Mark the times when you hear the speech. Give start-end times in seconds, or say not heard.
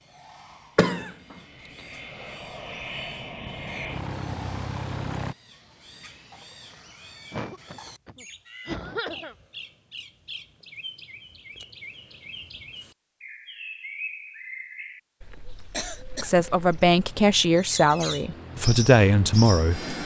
16.2-19.9.